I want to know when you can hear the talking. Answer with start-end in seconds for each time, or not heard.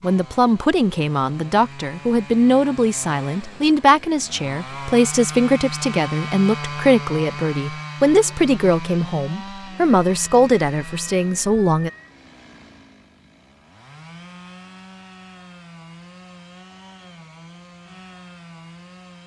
0.0-11.9.